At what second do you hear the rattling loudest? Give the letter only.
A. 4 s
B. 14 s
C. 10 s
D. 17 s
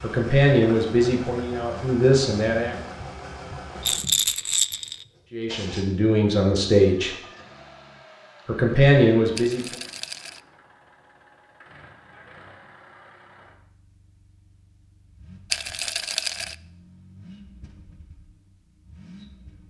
A.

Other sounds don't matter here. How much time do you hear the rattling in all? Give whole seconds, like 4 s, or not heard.
3 s.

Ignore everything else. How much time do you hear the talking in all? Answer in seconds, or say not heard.
6 s.